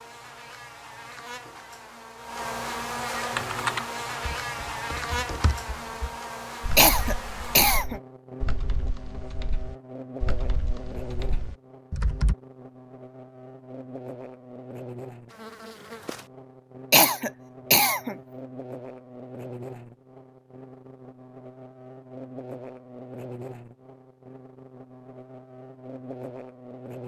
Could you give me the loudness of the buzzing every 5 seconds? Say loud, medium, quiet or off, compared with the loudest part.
loud, loud, medium, medium, medium, medium.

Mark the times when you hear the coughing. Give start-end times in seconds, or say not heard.
6.8-8.0, 16.9-18.1.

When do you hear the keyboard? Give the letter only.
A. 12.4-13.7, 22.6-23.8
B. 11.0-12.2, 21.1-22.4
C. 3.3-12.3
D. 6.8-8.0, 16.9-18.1
C.